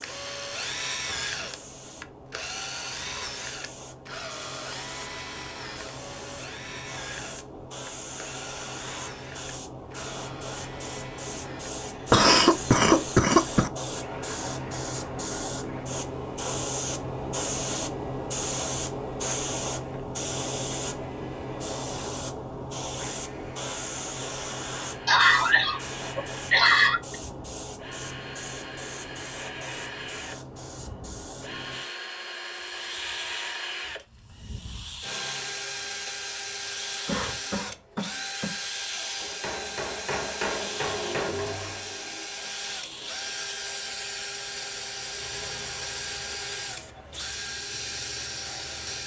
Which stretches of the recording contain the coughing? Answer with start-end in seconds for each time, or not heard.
12.1-13.7, 25.1-27.0, 37.0-38.5.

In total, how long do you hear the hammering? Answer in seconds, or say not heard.
2 s.